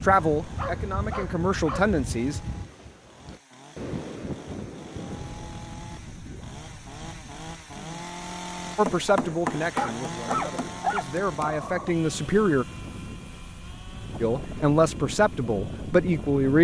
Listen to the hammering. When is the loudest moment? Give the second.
9 s.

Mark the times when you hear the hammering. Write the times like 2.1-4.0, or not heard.
8.8-11.6.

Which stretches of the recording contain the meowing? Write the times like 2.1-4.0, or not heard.
not heard.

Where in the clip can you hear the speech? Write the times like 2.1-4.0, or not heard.
0.0-2.4, 8.8-12.7, 14.2-16.5.